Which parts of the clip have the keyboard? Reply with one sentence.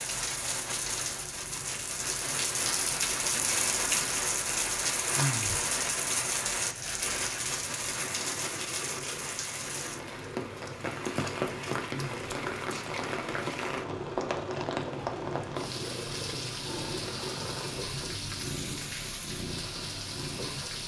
You can't hear the keyboard here.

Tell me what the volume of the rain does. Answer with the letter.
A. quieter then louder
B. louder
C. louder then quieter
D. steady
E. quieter
E.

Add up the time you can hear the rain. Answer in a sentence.
The rain can be heard for 21 seconds in total.